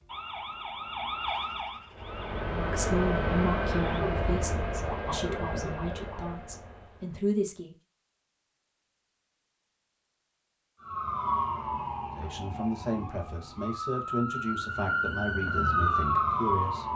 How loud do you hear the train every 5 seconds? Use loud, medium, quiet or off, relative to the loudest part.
loud, medium, off, off.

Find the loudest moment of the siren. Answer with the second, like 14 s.
16 s.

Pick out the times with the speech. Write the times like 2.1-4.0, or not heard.
2.5-7.8, 12.2-16.9.